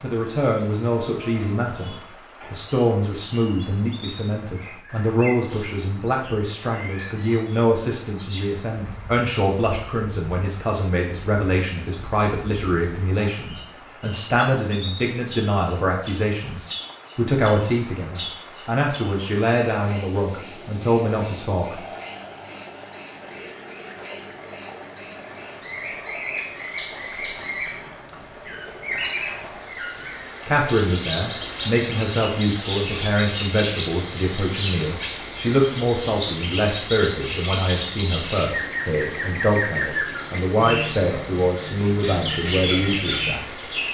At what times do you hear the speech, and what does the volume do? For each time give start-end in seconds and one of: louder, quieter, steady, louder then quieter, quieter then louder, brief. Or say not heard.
0.0-21.9 steady
30.4-43.6 steady.